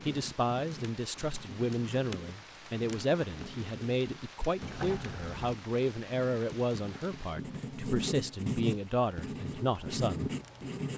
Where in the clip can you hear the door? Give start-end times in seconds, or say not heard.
4.6-5.5.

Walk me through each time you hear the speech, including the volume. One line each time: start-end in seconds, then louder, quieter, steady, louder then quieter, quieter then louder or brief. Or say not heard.
0.1-10.3 steady.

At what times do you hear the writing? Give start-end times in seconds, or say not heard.
0.0-10.9.